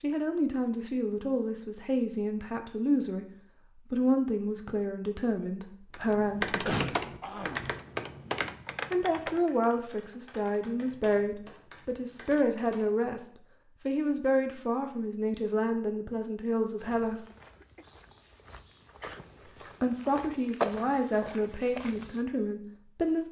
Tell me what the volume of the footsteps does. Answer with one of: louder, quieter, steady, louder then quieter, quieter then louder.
louder then quieter.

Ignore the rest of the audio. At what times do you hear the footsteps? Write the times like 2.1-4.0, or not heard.
16.8-22.2.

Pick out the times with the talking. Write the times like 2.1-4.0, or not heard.
0.0-6.7, 8.9-17.2, 19.8-23.2.